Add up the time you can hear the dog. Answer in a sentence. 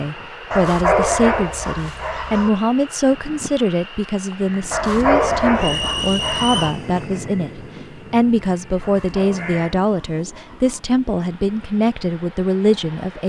You can hear the dog for 6 seconds altogether.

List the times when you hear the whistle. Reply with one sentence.
You can hear the whistle from 5.5 to 6.8 s.